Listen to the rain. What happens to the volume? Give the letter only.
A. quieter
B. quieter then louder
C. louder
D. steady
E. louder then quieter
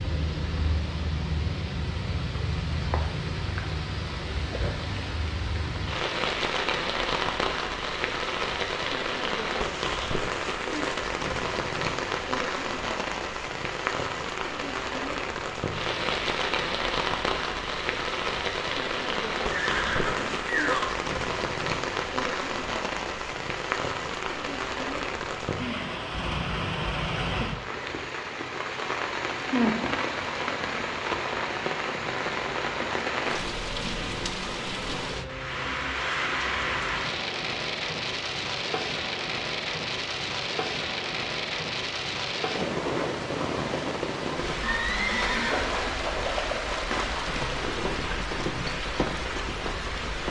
D.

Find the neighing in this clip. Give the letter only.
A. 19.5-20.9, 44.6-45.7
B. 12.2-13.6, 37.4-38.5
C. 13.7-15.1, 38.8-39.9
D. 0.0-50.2
A.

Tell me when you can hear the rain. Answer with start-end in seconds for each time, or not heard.
0.0-50.2.